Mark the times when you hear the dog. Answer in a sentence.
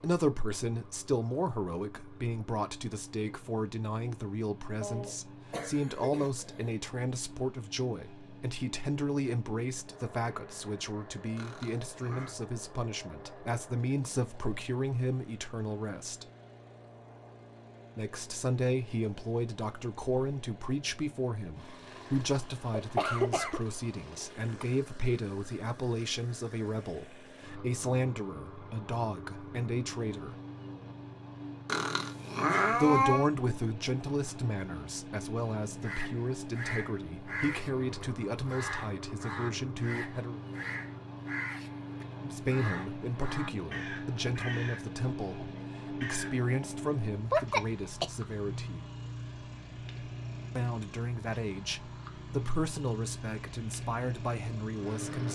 The dog can't be heard in this clip.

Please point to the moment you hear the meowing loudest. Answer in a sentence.
The loudest moment of the meowing is at 33 seconds.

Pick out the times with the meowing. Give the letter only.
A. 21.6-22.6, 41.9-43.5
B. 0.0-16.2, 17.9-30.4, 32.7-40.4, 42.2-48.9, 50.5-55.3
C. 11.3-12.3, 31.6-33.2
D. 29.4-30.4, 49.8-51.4
C.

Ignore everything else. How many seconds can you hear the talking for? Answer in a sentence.
You can hear the talking for 48 seconds altogether.